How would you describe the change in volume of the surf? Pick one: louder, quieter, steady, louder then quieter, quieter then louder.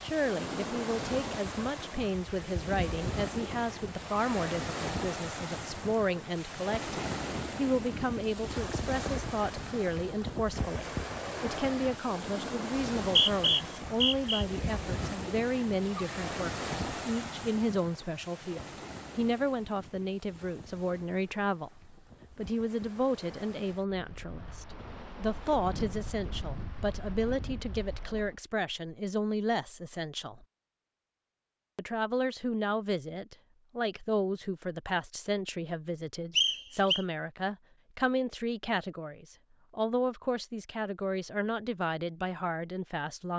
quieter.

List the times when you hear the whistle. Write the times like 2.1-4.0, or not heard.
13.0-14.4, 36.4-37.0.